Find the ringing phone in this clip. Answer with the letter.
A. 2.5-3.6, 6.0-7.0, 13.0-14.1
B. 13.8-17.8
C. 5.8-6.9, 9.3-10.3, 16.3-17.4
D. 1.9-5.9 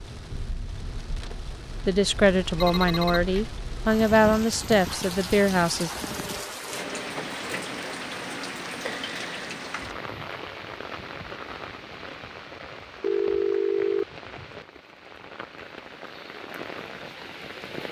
A.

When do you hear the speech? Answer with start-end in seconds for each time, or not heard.
1.9-5.9.